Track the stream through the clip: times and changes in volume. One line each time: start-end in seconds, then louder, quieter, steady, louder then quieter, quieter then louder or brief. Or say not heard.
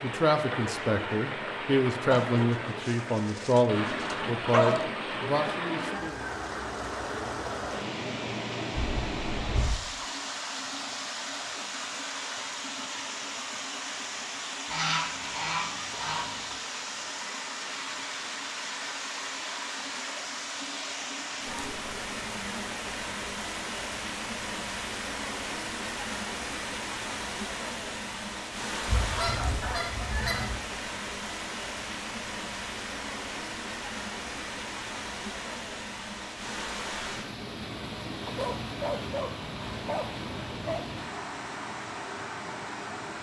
0.0-43.1 steady.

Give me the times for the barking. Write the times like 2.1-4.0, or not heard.
2.1-4.9, 38.2-40.9.